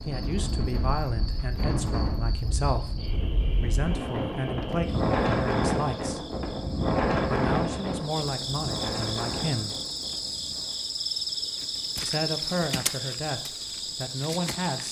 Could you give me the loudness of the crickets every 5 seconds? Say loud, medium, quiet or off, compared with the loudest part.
medium, medium, loud.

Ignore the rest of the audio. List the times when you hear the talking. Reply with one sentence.
You can hear the talking from 0.1 to 6.3 s, from 7.2 to 9.8 s and from 12.1 to 14.8 s.